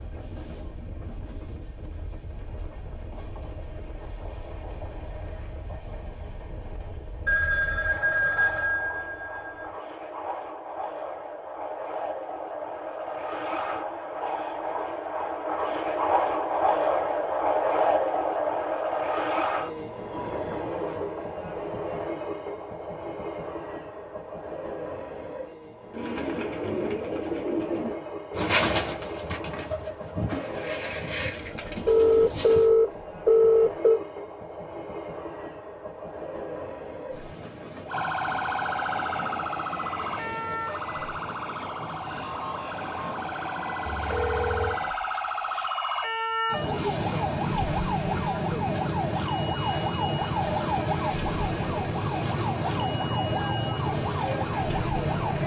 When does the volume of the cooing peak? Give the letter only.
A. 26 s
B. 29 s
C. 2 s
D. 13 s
B.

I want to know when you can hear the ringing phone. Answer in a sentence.
You can hear the ringing phone from 7.2 to 9.7 s, from 31.4 to 34.0 s and from 43.9 to 44.8 s.